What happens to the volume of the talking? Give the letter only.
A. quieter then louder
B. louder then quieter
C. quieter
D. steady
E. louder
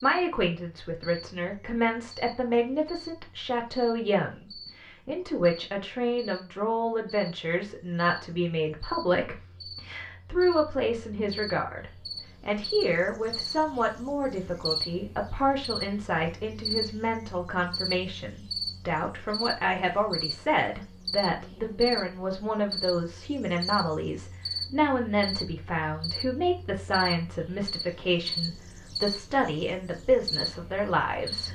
D.